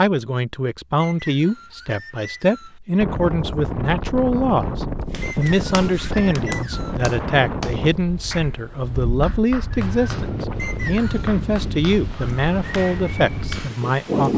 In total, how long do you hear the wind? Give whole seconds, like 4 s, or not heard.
11 s.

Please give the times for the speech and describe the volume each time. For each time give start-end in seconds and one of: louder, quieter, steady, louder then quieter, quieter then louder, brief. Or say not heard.
0.0-14.3 steady.